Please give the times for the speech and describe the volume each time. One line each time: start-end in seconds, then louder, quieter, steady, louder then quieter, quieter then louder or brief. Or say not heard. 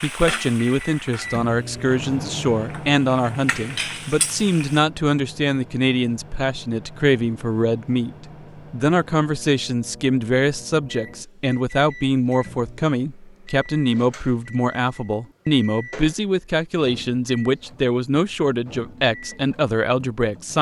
0.0-20.5 steady.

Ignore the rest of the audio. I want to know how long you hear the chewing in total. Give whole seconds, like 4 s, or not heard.
not heard.